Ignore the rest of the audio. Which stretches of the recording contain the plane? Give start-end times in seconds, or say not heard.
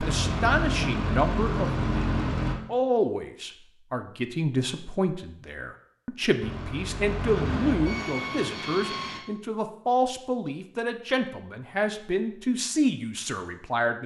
0.0-2.5, 6.4-9.2.